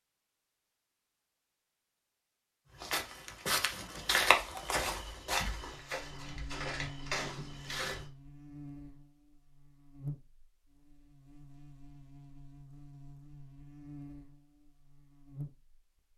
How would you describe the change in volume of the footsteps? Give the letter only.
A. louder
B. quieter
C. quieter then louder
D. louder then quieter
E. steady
D.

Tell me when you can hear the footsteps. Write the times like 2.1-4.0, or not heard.
2.8-8.1.